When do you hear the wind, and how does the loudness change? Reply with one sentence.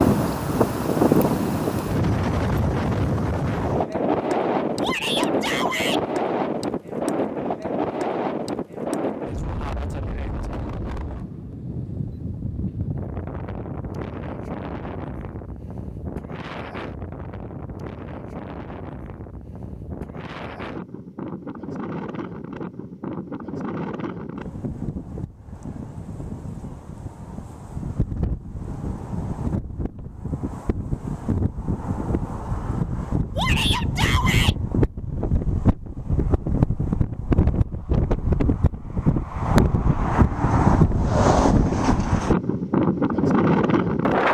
The wind can be heard from 0.0 to 44.2 s, getting quieter then louder.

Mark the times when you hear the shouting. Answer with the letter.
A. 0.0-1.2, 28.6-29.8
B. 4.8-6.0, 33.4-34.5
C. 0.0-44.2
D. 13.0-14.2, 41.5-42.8
B.